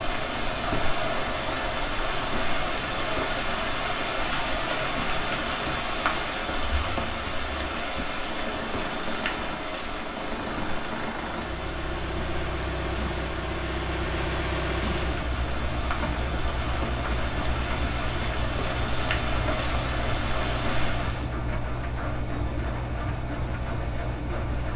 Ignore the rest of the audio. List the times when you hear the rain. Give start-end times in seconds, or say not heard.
0.0-21.4.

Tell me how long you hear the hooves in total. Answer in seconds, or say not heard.
not heard.